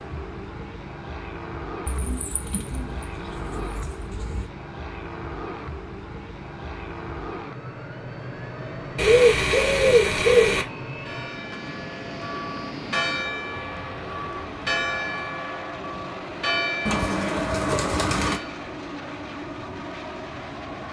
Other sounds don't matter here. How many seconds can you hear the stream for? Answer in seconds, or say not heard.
not heard.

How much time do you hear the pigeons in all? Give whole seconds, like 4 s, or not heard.
6 s.